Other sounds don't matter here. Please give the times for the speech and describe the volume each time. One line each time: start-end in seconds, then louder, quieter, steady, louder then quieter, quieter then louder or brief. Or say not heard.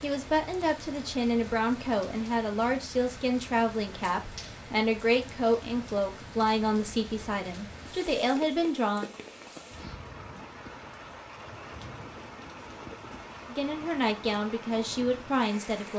0.0-9.1 steady
13.5-15.9 brief.